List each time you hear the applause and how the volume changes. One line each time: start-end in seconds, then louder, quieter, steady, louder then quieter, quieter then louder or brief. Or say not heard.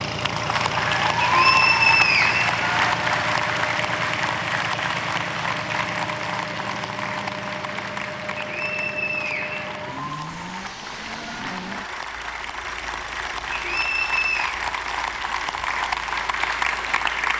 0.1-17.3 quieter then louder.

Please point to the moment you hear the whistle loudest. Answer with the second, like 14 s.
2 s.